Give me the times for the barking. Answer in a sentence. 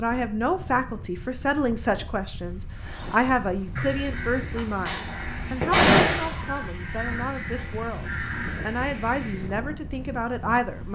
The barking can't be heard in this clip.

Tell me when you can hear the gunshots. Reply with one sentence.
The gunshots can be heard from 4.8 to 6.6 s.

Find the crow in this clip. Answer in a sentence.
The crow can be heard from 2.8 to 9.6 s.